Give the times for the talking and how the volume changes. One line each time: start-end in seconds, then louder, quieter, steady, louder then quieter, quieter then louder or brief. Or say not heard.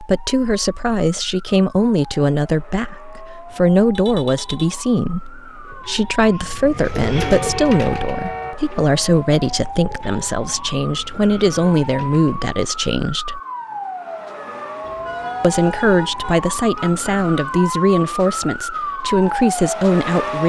0.0-13.4 steady
15.4-20.4 quieter then louder.